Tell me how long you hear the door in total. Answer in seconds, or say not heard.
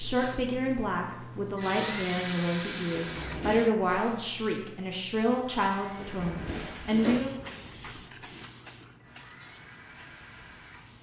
2 s.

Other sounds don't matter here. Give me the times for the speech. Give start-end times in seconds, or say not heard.
0.0-7.3.